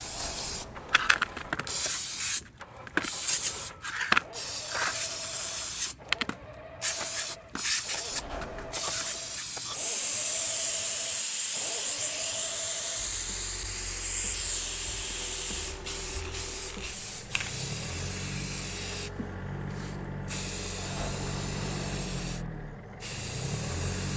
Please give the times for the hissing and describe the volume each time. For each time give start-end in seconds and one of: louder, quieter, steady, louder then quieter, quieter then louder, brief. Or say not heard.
0.0-24.1 quieter.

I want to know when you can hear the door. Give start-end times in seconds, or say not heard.
0.0-1.6, 8.1-8.8, 20.8-22.5.